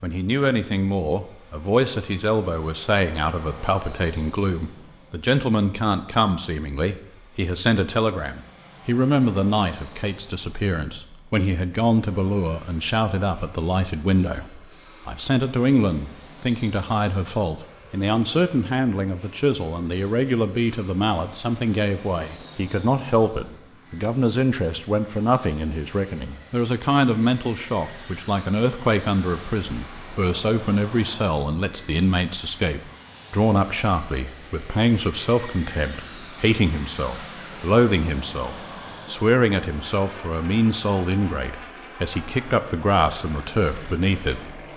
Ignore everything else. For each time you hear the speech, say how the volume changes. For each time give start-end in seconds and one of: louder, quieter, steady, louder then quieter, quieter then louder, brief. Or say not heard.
0.0-44.6 steady.